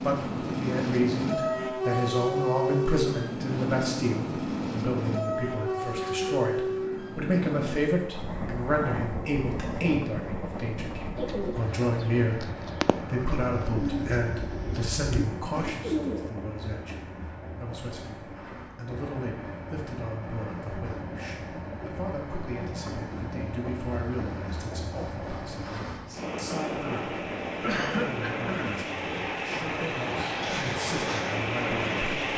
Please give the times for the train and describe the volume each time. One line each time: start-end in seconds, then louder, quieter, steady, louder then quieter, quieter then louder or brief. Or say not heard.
0.0-32.3 quieter then louder.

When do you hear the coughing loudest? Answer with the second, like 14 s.
28 s.